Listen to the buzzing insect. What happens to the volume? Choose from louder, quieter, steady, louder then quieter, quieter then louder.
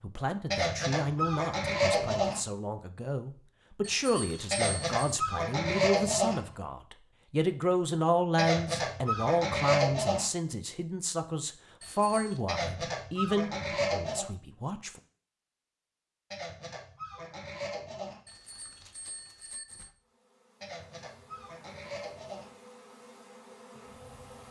louder.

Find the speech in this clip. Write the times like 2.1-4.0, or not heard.
0.0-15.0.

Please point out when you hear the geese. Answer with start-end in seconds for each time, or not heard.
0.5-2.4, 4.5-6.5, 8.3-10.2, 12.4-14.2, 16.3-18.2, 20.6-22.5.